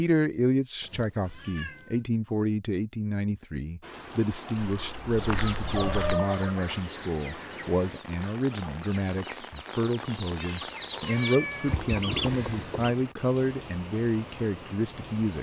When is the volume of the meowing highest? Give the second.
6 s.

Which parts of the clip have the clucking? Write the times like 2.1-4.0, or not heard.
5.2-12.9.